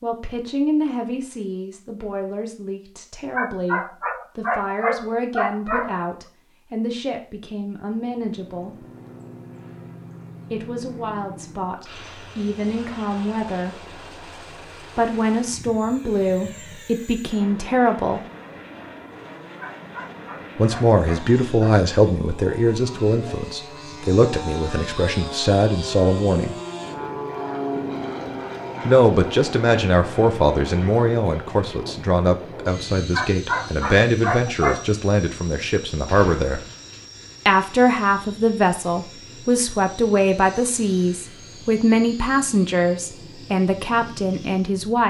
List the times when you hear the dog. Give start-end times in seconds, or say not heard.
3.3-6.1, 19.6-21.9, 33.1-35.0.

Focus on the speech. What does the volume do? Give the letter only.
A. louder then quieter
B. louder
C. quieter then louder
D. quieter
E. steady
B.